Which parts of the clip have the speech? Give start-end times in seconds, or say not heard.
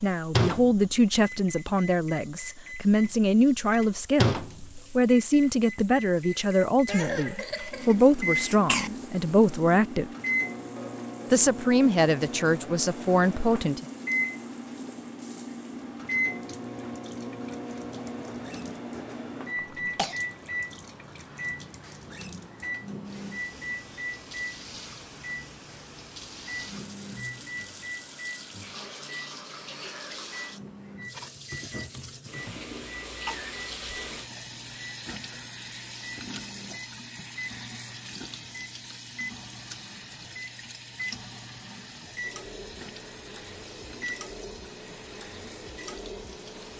0.0-10.1, 11.3-13.8.